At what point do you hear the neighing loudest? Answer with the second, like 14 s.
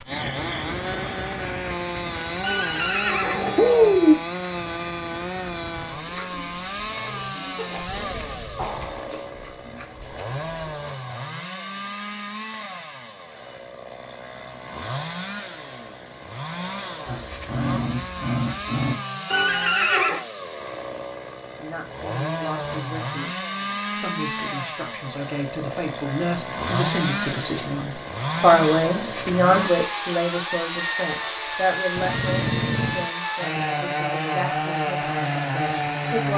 4 s.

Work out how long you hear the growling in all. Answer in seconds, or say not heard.
5 s.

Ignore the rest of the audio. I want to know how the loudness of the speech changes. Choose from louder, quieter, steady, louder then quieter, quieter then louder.
louder then quieter.